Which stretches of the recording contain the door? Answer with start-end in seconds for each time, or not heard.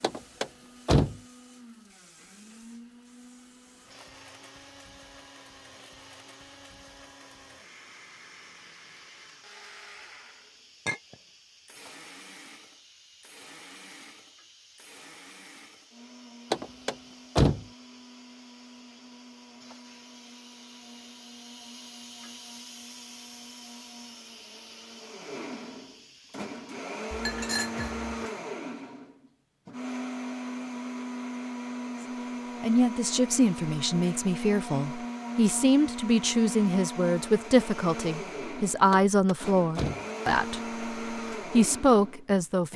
0.0-1.1, 16.5-17.6, 38.9-40.0.